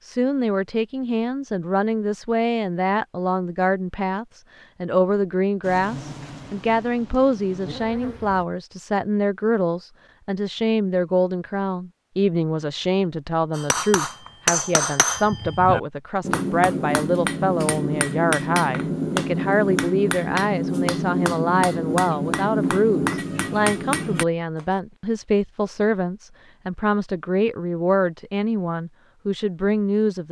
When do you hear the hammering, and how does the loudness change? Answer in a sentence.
You can hear the hammering from 13.5 to 24.6 s, at a steady volume.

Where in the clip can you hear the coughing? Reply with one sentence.
You can't hear the coughing here.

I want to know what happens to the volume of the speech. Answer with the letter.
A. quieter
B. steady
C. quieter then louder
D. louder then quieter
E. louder
B.